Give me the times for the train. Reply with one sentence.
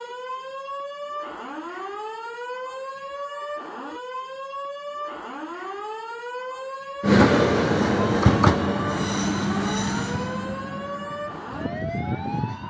You can hear the train from 7.0 to 12.6 s.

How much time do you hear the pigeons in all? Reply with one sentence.
You can't hear the pigeons here.